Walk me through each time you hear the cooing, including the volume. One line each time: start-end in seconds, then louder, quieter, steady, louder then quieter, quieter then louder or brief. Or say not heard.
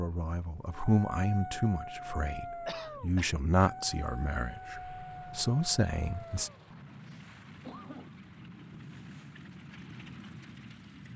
not heard.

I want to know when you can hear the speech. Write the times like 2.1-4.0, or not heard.
0.0-6.5.